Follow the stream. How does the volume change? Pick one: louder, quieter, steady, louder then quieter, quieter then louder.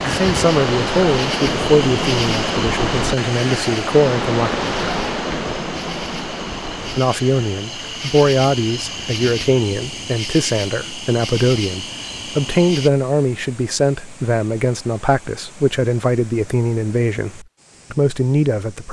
quieter.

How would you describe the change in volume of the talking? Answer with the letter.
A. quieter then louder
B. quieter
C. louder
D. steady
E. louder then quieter
D.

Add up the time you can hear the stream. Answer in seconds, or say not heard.
19 s.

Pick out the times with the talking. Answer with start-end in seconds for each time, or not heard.
0.0-4.5, 7.0-18.8.